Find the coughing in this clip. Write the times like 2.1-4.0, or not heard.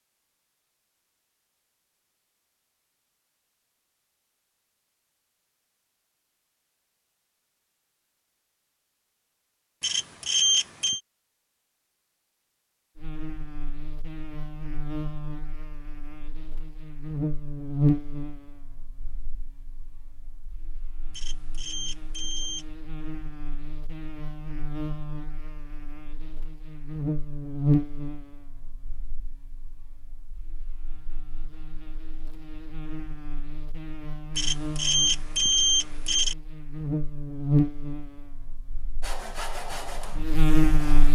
not heard.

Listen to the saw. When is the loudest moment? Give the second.
40 s.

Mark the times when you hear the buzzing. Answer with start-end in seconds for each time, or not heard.
12.9-41.0.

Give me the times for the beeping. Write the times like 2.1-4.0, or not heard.
9.8-11.0, 21.1-22.6, 34.4-36.4.